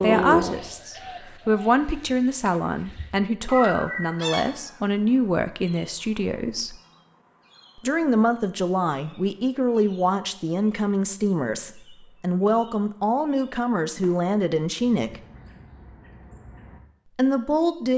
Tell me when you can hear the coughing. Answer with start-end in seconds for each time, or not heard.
not heard.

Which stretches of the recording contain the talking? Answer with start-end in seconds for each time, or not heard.
0.0-6.8, 7.8-15.2, 17.1-17.9.